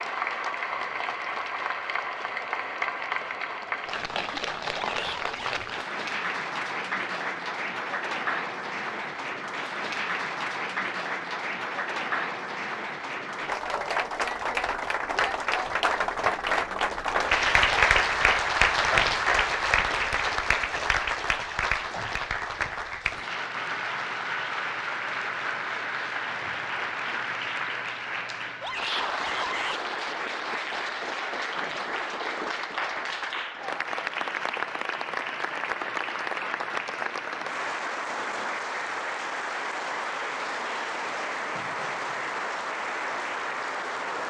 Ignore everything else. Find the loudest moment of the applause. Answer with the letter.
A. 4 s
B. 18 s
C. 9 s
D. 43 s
B.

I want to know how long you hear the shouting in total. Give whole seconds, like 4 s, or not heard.
2 s.